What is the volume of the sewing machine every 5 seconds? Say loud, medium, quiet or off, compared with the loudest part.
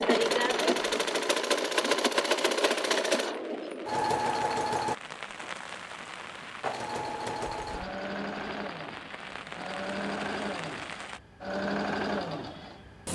loud, medium, medium.